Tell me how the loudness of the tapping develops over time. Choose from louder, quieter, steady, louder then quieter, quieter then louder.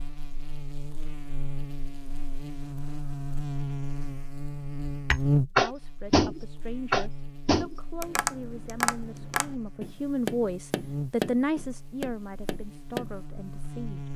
quieter.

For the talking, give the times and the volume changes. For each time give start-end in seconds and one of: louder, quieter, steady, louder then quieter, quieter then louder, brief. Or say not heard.
5.5-14.1 louder then quieter.